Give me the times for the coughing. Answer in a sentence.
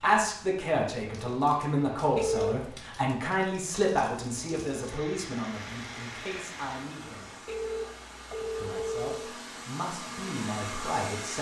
You can't hear the coughing here.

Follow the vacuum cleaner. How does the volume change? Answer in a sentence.
The volume of the vacuum cleaner goes up.